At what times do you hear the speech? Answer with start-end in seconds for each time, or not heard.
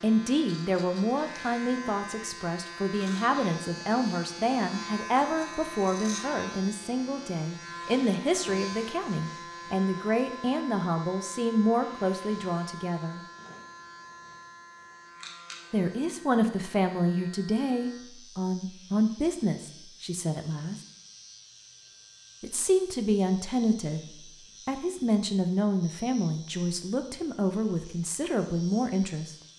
0.0-13.2, 15.7-20.8, 22.4-24.0, 24.6-29.4.